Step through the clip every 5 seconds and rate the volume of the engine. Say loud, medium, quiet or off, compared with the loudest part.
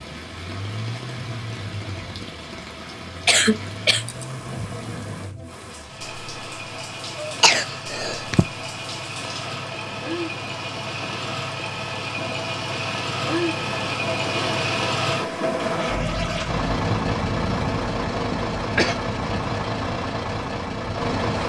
medium, medium, loud, loud, loud.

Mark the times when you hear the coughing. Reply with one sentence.
You can hear the coughing from 3.2 to 4.7 s, from 7.2 to 8.4 s and from 18.1 to 18.9 s.